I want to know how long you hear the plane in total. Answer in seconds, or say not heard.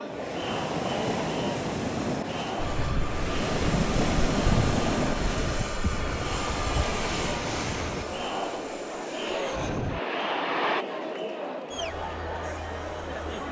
8 s.